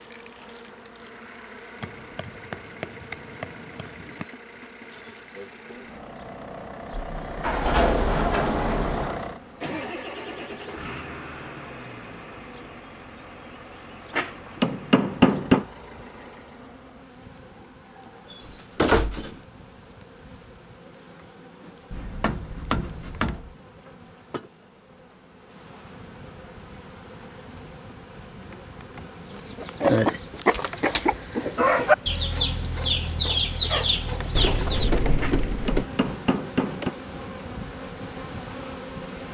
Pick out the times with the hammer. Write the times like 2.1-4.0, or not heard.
1.8-4.2, 14.1-15.7, 21.9-23.6, 35.2-37.0.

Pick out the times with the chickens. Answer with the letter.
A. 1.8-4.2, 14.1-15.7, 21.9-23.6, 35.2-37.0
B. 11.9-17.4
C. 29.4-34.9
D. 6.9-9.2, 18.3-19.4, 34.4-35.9
C.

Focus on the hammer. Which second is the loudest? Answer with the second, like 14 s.
15 s.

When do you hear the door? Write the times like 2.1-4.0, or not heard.
6.9-9.2, 18.3-19.4, 34.4-35.9.